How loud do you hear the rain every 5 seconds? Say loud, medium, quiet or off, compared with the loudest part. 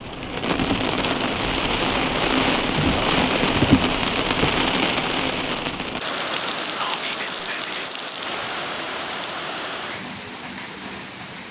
loud, medium, quiet.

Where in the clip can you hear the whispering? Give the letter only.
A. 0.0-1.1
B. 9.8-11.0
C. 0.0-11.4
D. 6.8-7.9
D.